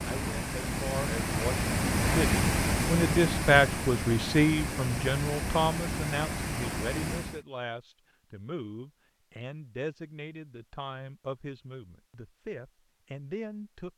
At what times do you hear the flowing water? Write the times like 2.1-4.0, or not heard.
0.0-7.5.